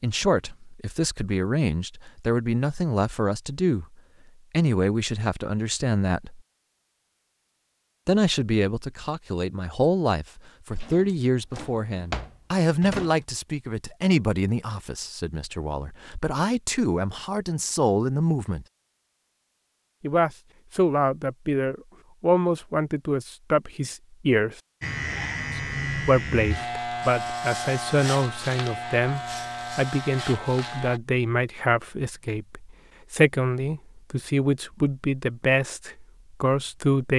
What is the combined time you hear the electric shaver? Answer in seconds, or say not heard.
6 s.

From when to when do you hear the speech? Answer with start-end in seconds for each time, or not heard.
0.0-3.9, 4.5-6.4, 8.1-18.6, 20.0-24.6, 25.6-37.1.